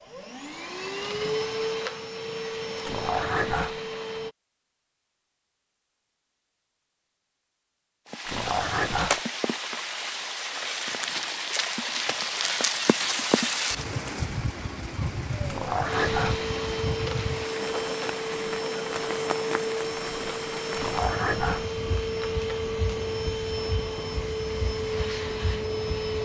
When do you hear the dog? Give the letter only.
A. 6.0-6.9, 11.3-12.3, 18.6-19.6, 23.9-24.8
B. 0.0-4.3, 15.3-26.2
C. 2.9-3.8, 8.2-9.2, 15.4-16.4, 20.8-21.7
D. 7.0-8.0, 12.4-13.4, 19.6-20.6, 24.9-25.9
C.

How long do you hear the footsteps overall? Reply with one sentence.
You can't hear the footsteps here.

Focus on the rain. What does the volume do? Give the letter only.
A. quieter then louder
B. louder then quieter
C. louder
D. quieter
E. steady
D.